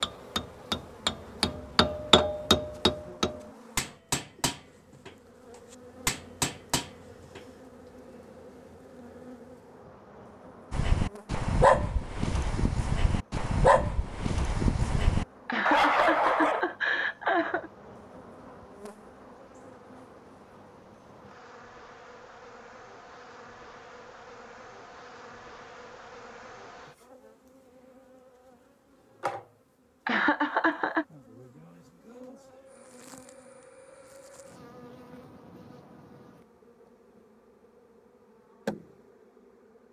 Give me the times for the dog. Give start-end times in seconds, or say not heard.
10.7-16.6.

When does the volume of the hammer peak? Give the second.
2 s.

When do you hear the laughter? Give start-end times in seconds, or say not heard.
15.4-17.7, 30.1-31.1.